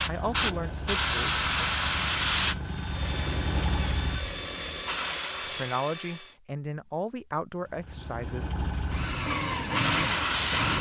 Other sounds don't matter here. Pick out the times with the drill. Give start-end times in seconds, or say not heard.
2.6-6.3, 8.8-10.7.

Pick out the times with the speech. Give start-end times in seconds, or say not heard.
0.1-1.4, 5.5-8.4.